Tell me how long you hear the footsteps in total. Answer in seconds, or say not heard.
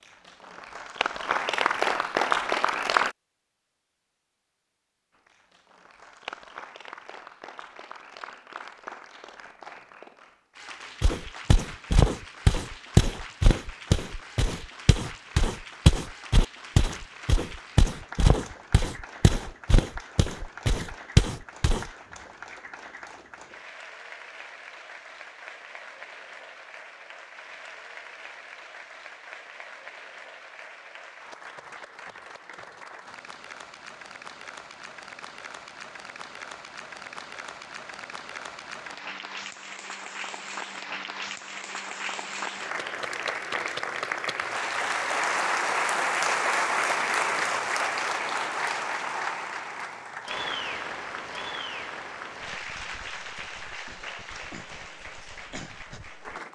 11 s.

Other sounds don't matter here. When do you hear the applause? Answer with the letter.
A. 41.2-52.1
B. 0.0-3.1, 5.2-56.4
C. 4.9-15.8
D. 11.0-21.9
B.